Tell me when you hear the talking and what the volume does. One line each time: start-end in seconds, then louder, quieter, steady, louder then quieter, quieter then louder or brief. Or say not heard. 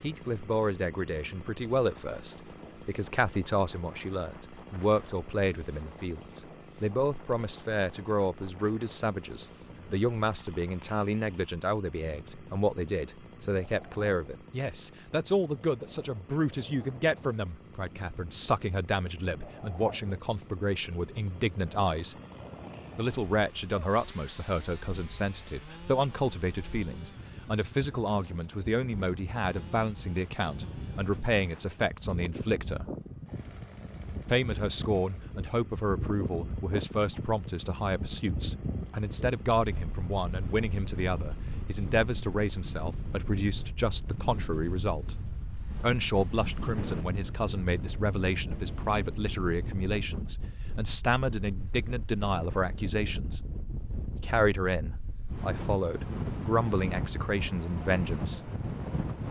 0.0-22.1 steady
22.9-32.9 steady
34.2-45.1 steady
45.8-53.4 steady
54.1-58.5 steady.